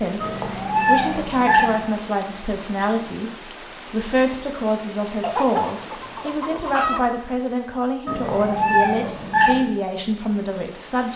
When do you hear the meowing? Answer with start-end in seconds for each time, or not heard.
0.2-1.8, 8.1-9.7.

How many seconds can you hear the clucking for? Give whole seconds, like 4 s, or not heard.
2 s.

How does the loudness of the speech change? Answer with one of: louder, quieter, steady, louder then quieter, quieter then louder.
steady.